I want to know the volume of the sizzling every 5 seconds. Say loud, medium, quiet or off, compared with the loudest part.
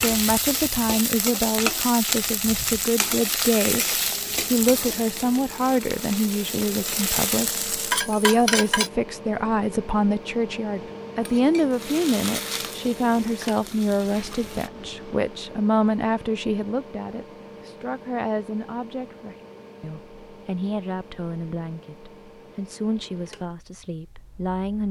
loud, loud, medium, off, off.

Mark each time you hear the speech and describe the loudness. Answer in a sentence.
The speech can be heard from 0.0 to 24.8 s, getting quieter.